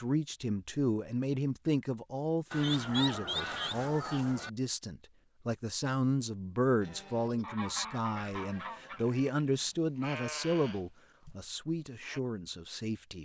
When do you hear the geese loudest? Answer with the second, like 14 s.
3 s.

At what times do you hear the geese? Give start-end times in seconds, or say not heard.
2.5-4.5, 7.4-9.3.